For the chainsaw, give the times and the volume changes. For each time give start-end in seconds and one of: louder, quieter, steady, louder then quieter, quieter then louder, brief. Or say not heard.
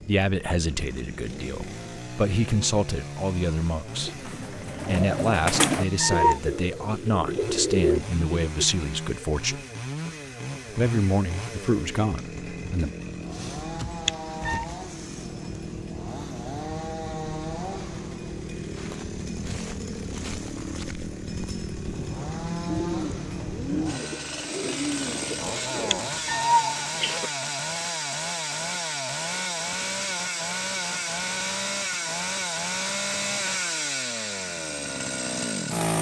0.0-35.9 louder.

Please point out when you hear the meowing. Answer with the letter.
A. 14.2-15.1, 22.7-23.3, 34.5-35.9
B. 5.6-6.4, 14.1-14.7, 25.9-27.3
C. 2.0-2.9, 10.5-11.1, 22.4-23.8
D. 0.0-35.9
B.